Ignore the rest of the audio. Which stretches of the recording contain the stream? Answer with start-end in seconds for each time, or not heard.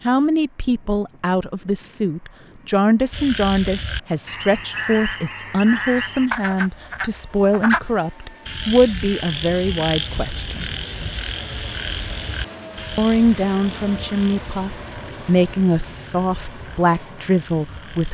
not heard.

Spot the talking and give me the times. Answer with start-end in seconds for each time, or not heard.
0.0-10.7, 12.9-18.0.